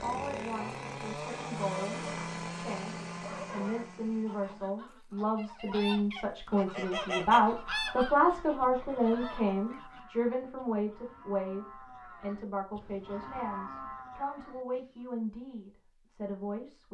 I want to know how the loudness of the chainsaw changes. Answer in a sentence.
The volume of the chainsaw goes down.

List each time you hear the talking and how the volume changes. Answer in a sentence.
You can hear the talking from 0.0 to 16.8 s, getting louder then quieter.